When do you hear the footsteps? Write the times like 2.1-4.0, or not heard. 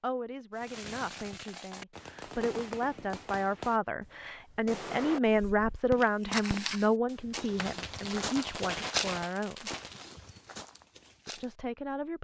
6.0-11.6.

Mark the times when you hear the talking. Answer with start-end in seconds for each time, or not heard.
0.0-9.7, 11.2-12.2.